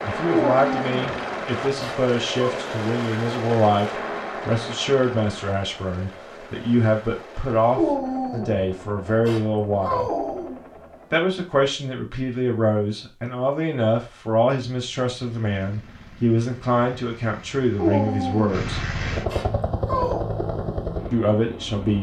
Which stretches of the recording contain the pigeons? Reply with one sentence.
You can't hear the pigeons here.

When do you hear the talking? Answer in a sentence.
You can hear the talking from 0.0 to 10.1 s, from 11.1 to 18.9 s and from 21.1 to 21.9 s.